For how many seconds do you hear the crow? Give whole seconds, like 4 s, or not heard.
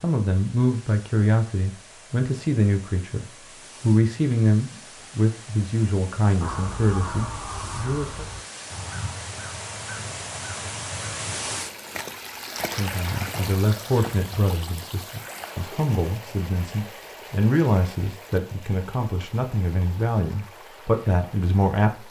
5 s.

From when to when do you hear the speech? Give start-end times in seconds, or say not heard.
0.0-8.2, 12.8-22.0.